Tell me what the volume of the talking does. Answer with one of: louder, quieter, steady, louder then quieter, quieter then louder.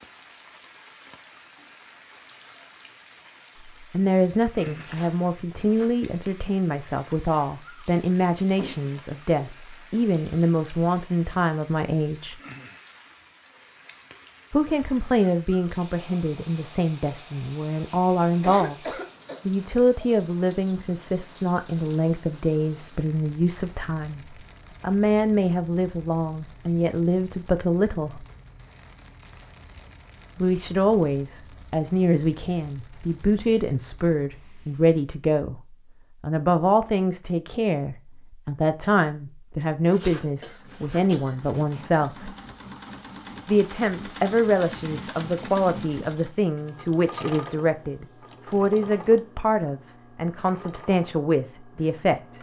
steady.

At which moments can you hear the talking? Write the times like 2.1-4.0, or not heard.
3.6-12.3, 14.5-18.8, 19.4-28.2, 30.4-42.3, 43.5-52.3.